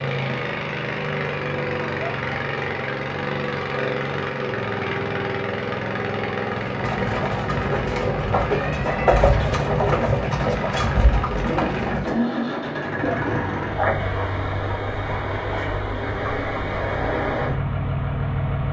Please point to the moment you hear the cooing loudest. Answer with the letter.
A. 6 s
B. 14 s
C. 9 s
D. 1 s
C.